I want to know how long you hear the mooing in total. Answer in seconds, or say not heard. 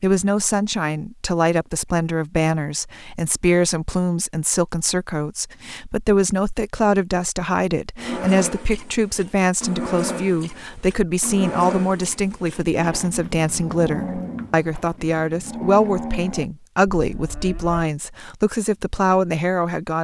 10 s.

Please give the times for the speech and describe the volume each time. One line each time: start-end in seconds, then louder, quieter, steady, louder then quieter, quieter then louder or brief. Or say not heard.
0.0-19.9 steady.